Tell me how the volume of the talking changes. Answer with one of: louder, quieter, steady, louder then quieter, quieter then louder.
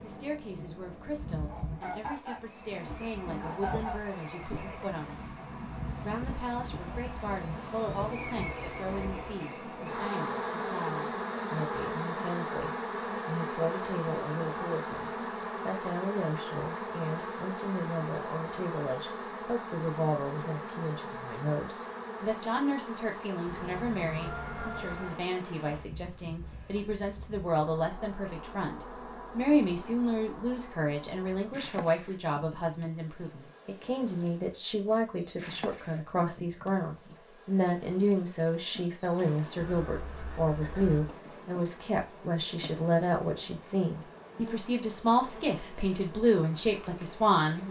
louder.